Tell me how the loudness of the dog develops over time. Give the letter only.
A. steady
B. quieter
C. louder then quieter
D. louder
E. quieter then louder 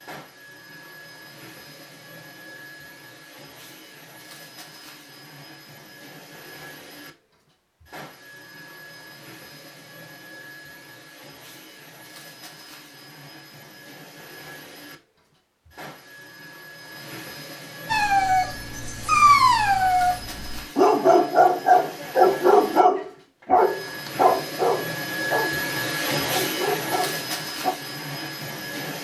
B.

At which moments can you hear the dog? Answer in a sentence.
You can hear the dog from 17.9 to 27.8 s.